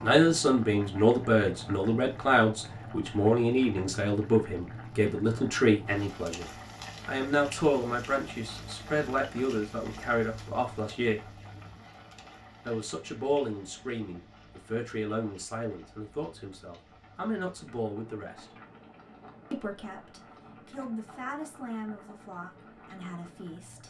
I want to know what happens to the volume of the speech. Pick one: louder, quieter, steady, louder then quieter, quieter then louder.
quieter.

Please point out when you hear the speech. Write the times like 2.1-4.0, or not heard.
0.0-11.3, 12.7-18.4, 19.5-23.8.